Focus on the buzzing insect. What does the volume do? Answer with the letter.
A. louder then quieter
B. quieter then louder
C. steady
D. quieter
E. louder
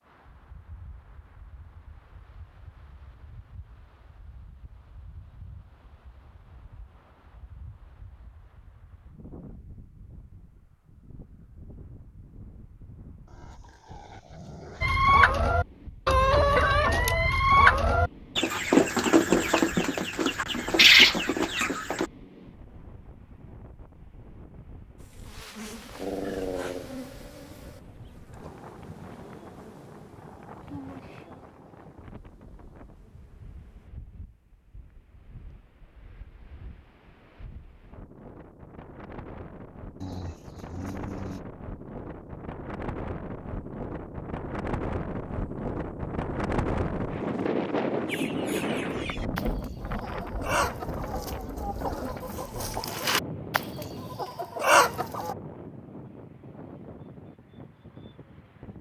D.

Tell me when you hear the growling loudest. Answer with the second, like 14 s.
26 s.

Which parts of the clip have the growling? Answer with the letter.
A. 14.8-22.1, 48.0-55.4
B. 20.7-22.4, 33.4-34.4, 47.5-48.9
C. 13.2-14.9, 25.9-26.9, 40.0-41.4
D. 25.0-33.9
C.